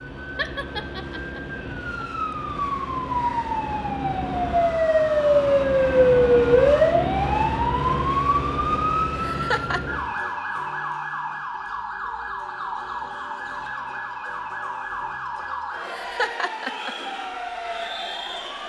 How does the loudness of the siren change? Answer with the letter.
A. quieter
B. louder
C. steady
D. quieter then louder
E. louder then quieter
E.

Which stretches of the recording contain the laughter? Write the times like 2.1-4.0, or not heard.
0.3-2.0, 9.1-9.8, 15.8-16.9.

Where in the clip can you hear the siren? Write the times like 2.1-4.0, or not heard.
0.0-18.6.